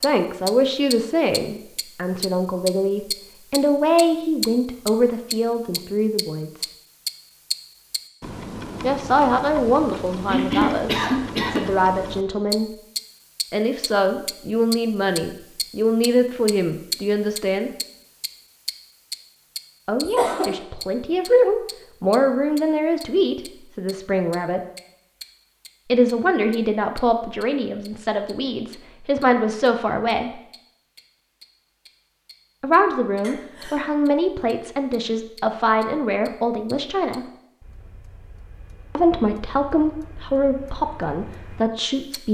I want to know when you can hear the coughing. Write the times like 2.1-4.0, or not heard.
10.2-11.7, 20.1-20.6, 33.2-34.0.